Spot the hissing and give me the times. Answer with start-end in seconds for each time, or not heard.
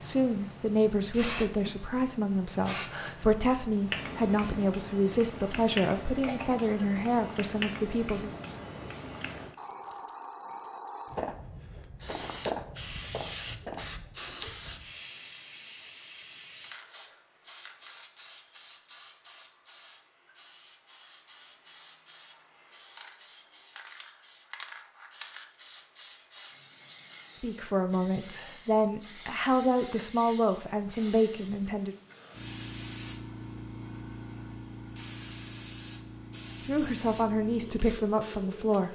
0.0-38.9.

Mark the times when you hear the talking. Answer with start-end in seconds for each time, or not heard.
0.0-8.3, 27.4-31.9, 36.6-38.9.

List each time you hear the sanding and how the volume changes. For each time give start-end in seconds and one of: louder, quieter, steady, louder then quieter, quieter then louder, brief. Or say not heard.
not heard.